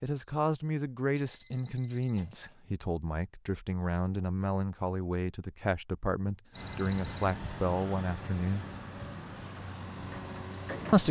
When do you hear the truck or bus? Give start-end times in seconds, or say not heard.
6.5-11.0.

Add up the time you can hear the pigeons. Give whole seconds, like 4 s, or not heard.
not heard.